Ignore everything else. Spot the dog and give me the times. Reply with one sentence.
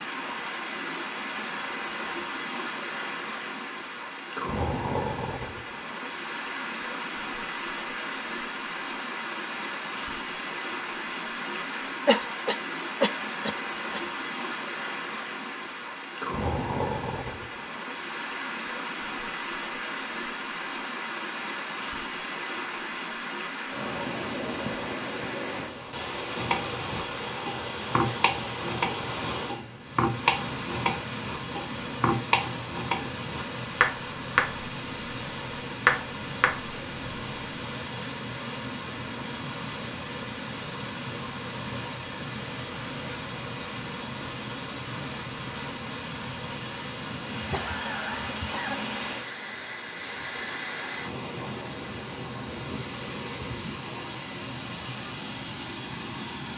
The dog can't be heard in this clip.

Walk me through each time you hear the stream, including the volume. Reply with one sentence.
The stream can be heard from 0.0 to 56.5 s, at a steady volume.